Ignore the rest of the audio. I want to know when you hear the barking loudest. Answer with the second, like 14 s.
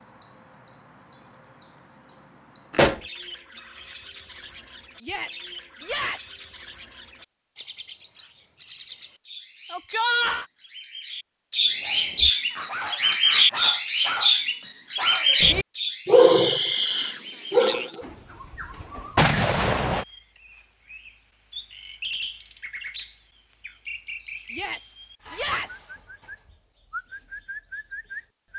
16 s.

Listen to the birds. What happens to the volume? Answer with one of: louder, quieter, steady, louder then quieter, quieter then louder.
louder then quieter.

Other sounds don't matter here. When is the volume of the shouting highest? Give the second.
10 s.